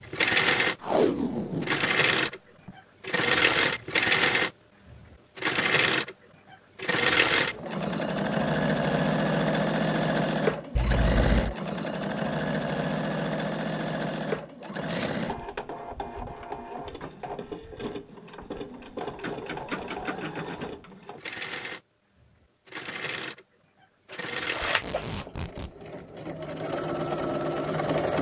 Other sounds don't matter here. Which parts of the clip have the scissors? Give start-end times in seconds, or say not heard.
10.8-11.6, 24.1-25.2.